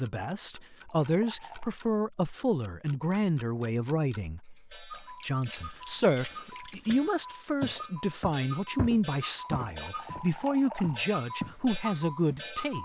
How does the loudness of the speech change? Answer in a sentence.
The volume of the speech stays about the same.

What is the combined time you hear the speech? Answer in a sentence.
You can hear the speech for 13 seconds altogether.